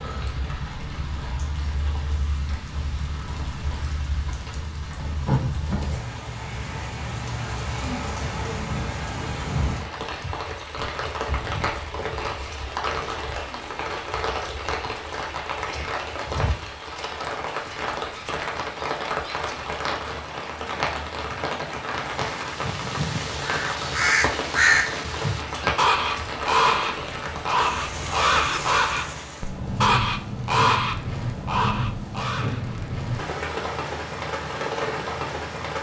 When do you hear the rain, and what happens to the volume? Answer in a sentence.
The rain can be heard from 0.0 to 35.7 s, at a steady volume.